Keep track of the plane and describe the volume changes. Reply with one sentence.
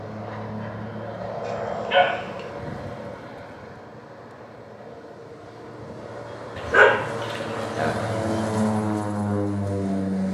The volume of the plane goes down, then up.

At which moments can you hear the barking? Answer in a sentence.
You can hear the barking from 1.4 to 2.4 s and from 6.5 to 7.9 s.